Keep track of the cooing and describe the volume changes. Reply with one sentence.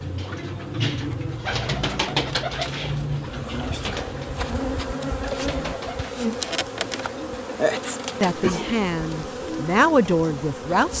The loudness of the cooing goes down.